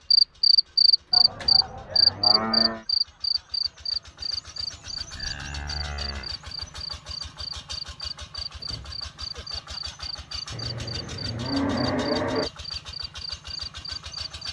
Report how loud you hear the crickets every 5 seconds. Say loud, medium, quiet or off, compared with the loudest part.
loud, quiet, quiet.